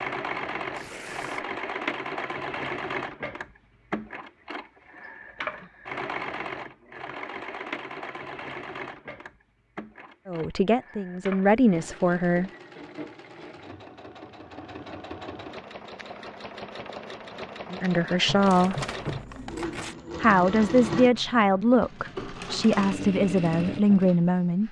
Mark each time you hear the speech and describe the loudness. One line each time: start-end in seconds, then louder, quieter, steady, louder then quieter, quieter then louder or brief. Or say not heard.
10.2-12.5 brief
17.7-18.8 brief
20.2-24.6 steady.